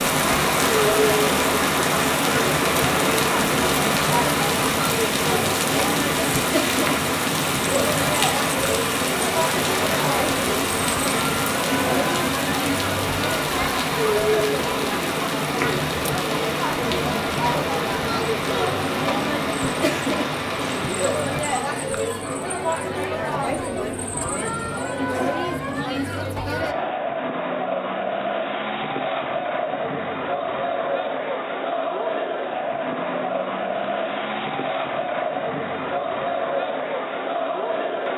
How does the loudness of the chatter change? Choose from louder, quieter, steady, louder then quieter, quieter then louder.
steady.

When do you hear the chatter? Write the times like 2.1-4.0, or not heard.
0.1-38.1.